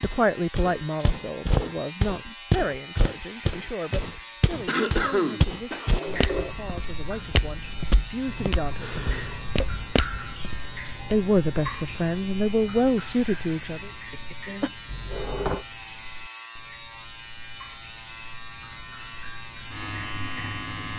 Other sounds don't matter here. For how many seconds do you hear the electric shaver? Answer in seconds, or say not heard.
21 s.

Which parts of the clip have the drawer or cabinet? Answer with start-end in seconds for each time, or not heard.
5.7-6.5, 14.8-15.7.